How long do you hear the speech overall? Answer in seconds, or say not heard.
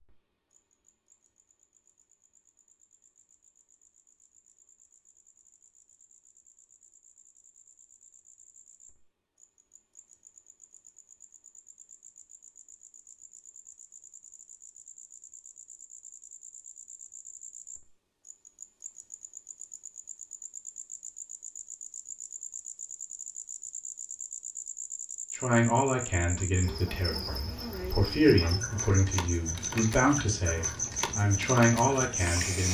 7 s.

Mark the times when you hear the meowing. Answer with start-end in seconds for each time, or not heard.
not heard.